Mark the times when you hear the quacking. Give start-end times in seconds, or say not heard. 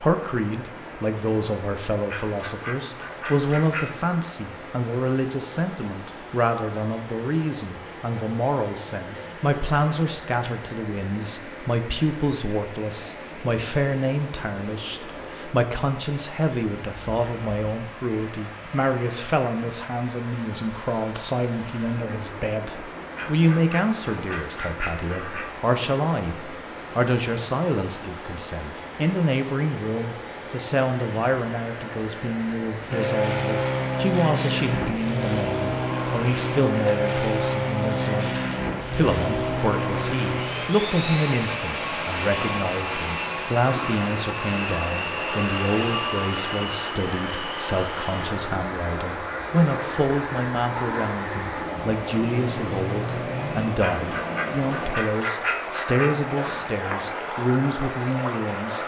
2.0-4.0, 23.1-25.6, 53.8-56.6.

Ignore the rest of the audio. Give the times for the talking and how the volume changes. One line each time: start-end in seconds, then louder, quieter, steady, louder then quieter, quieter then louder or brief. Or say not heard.
0.0-58.8 steady.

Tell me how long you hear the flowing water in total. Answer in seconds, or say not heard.
59 s.